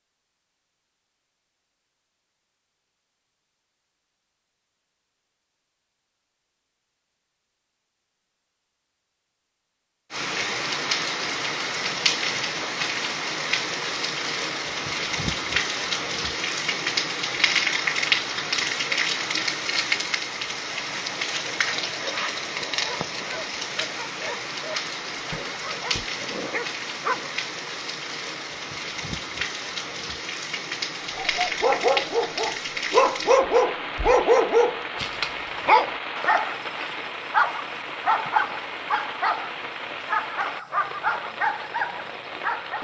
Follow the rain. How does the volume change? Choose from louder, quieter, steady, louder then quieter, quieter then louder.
quieter.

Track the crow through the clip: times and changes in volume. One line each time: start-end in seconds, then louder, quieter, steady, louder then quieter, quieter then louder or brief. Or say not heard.
not heard.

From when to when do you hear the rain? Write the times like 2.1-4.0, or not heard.
10.1-42.8.